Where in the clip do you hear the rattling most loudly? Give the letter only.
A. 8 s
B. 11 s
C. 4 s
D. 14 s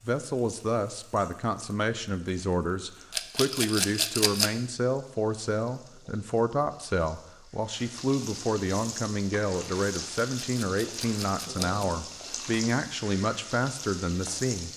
C.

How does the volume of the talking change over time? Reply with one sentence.
The volume of the talking stays about the same.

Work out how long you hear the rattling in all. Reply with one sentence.
The rattling can be heard for 3 seconds in total.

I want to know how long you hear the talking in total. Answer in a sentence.
The talking can be heard for 15 seconds in total.